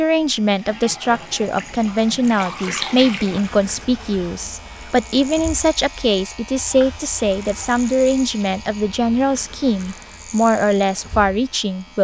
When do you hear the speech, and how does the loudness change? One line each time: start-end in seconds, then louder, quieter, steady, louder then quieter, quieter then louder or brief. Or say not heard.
0.0-11.9 steady.